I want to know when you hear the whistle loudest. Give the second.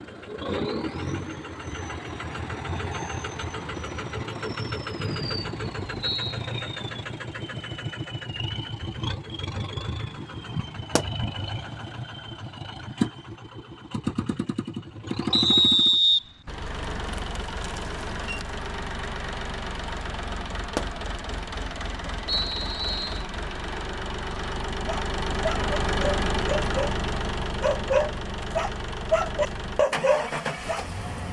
16 s.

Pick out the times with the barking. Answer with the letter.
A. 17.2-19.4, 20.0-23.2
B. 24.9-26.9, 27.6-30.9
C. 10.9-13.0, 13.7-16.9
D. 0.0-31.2
B.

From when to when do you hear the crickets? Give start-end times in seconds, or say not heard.
not heard.